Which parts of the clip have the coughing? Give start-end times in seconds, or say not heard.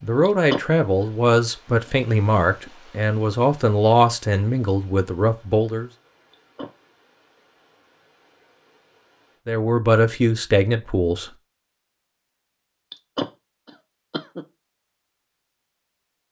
0.2-1.1, 6.3-6.7, 12.9-14.4.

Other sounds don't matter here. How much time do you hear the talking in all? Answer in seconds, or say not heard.
8 s.